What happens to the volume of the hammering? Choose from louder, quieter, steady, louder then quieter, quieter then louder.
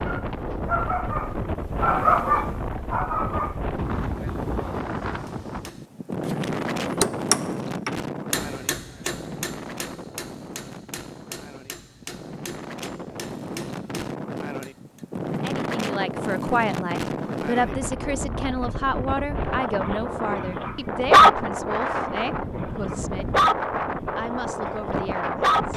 quieter.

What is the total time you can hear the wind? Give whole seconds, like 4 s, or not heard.
26 s.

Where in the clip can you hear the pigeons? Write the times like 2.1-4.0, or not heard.
not heard.